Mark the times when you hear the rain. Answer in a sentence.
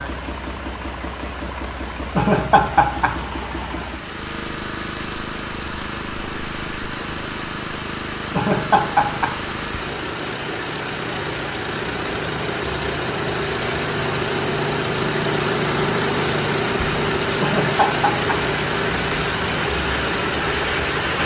The rain can be heard from 0.0 to 21.2 s.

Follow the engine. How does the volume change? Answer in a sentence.
The volume of the engine goes up.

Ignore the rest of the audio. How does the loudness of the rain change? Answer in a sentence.
The volume of the rain goes up.